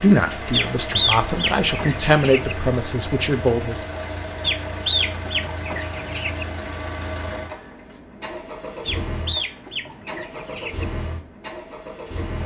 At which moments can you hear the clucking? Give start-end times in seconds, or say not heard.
0.5-2.5, 4.4-6.5, 8.8-10.8.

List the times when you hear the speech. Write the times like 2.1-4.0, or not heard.
0.0-3.8.